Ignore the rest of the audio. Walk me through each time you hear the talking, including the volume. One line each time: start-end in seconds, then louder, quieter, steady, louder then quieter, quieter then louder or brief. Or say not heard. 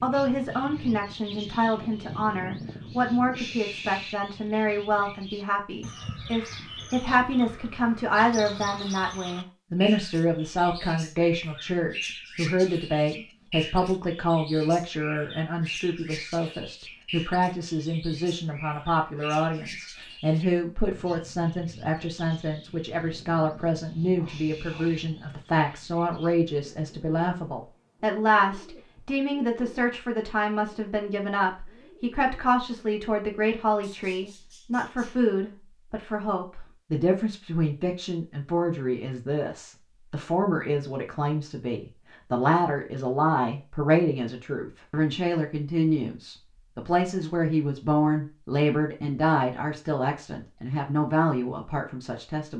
0.0-52.5 steady.